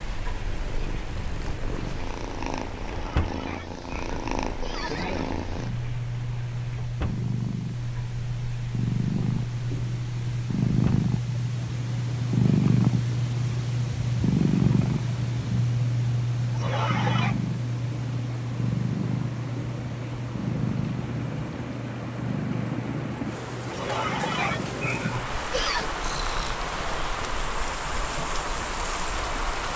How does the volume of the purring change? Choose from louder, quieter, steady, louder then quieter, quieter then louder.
louder then quieter.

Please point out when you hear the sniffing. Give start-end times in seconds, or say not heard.
2.8-5.3, 16.6-17.4, 23.7-25.9.